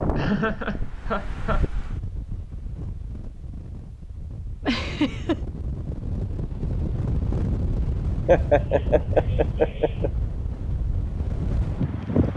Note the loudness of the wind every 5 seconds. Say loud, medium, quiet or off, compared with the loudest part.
medium, loud, loud.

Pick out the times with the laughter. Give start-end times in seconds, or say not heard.
0.1-1.6, 4.7-5.4, 8.2-10.1.